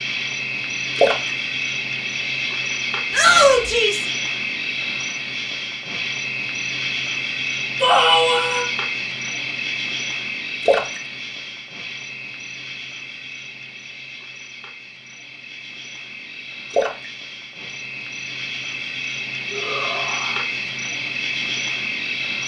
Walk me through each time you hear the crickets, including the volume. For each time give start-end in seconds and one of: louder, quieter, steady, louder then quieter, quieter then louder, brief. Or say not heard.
0.0-22.4 quieter then louder.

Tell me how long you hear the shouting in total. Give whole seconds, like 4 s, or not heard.
3 s.